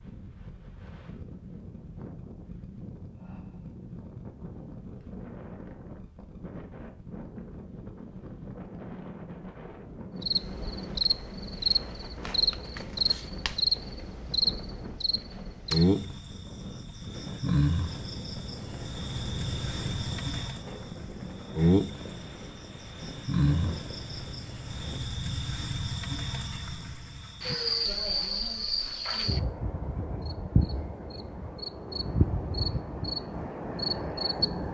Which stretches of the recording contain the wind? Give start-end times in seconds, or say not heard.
0.0-25.0.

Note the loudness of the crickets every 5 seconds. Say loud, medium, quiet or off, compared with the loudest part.
off, off, loud, loud, loud, loud, loud.